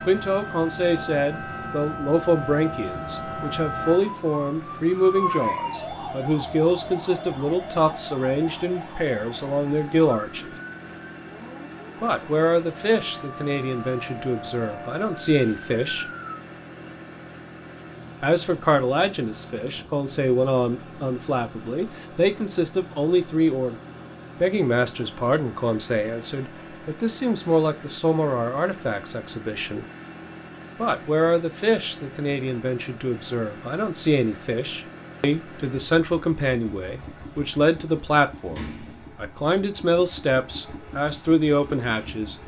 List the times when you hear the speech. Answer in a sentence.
The speech can be heard from 0.1 to 10.6 s, from 12.0 to 16.1 s, from 18.2 to 23.8 s, from 24.4 to 29.9 s and from 30.8 to 42.4 s.